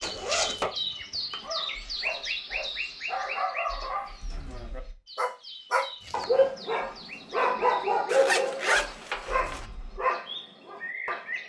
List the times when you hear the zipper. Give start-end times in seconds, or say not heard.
0.0-0.6, 8.1-9.7.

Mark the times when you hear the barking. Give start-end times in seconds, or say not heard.
1.4-11.3.